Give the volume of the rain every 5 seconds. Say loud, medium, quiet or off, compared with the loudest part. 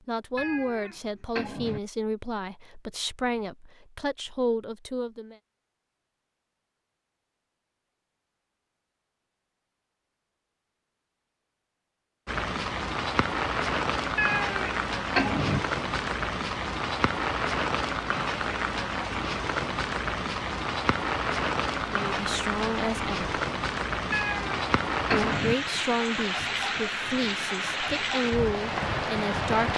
off, off, loud, loud, loud, loud.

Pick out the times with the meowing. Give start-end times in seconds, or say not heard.
0.3-1.8, 14.2-15.6, 24.1-25.6.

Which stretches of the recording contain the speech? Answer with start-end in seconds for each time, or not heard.
0.1-5.3, 21.9-23.4, 25.1-29.7.